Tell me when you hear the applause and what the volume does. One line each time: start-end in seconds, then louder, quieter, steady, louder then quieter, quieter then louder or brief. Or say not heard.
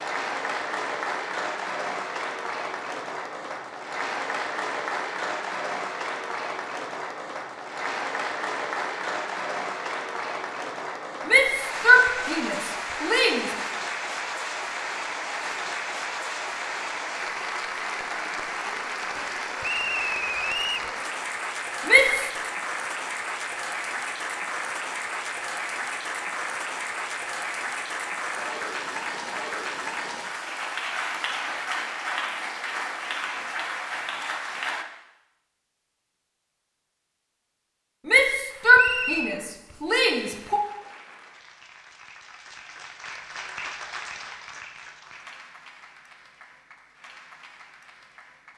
0.0-34.9 steady
38.5-48.5 louder then quieter.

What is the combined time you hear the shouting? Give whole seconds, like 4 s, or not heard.
5 s.